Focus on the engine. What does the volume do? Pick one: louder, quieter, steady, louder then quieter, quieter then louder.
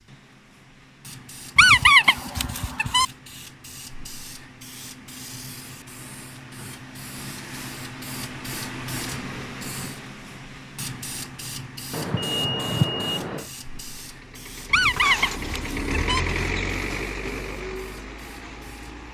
louder then quieter.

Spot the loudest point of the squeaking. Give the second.
2 s.